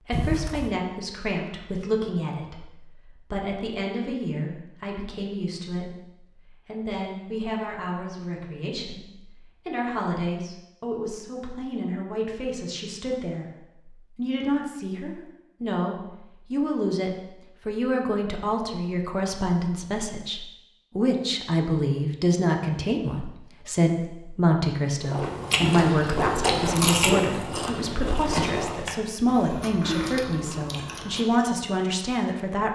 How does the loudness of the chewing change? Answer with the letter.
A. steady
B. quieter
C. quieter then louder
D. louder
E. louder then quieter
B.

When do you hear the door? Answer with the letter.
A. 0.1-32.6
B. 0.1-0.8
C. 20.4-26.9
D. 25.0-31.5
B.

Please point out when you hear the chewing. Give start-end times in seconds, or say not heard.
25.0-31.5.